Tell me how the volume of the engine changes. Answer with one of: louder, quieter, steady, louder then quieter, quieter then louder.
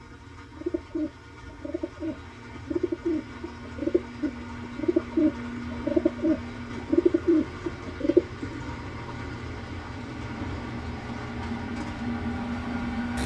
louder.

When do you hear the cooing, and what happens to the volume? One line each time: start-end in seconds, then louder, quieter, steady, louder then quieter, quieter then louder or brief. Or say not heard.
0.5-8.6 louder.